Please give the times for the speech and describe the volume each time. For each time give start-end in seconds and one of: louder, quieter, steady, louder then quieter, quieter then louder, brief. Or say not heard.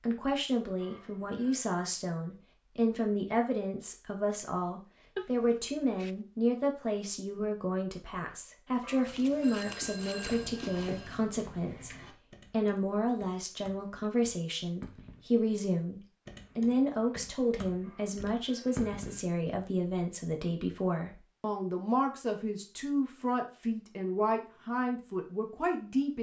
0.0-26.1 steady.